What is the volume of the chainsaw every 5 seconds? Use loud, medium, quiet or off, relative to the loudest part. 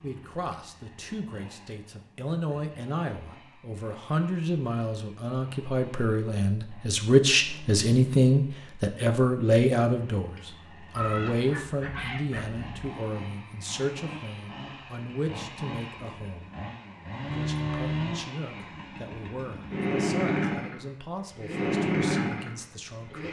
quiet, quiet, quiet, medium, loud.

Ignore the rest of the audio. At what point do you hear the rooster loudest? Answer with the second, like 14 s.
11 s.